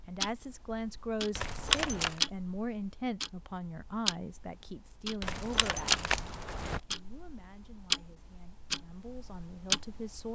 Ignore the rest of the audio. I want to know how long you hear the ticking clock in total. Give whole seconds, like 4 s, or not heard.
10 s.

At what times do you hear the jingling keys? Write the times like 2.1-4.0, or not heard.
1.4-2.2, 5.2-6.8.